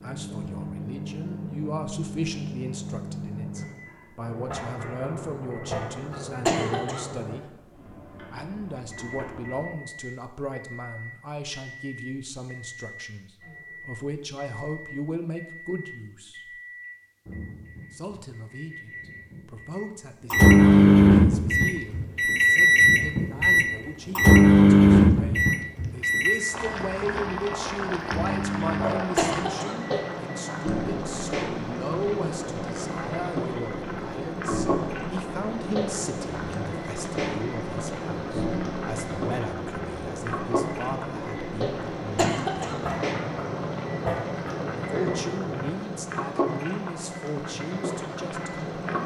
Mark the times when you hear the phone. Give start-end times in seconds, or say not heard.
not heard.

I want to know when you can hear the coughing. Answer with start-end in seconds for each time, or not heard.
6.5-7.0, 29.1-29.8, 42.1-42.8.